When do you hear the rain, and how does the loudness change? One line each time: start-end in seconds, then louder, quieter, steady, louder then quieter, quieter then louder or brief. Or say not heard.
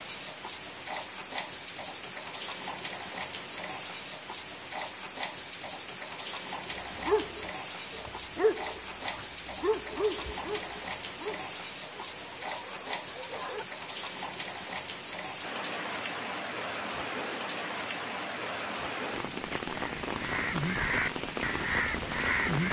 0.0-22.6 steady.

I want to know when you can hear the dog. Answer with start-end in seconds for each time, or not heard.
6.8-13.7.